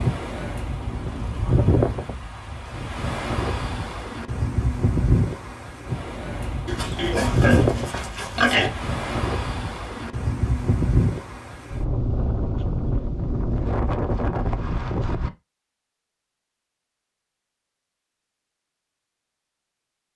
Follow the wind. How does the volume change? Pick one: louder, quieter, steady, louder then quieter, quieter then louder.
steady.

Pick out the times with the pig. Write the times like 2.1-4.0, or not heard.
6.7-8.7.